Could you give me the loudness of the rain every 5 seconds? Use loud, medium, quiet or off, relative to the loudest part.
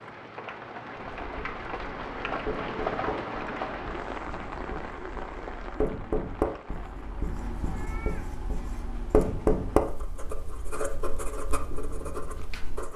loud, medium, quiet.